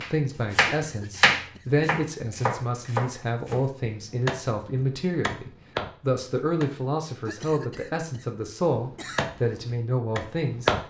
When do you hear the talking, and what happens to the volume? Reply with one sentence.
You can hear the talking from 0.0 to 10.8 s, at a steady volume.